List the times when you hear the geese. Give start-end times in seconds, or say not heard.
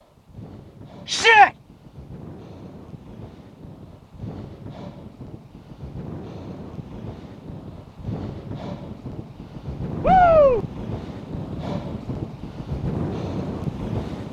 not heard.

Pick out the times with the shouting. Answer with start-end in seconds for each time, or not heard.
1.1-1.5, 10.0-10.7.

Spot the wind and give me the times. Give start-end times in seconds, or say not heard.
0.0-14.2.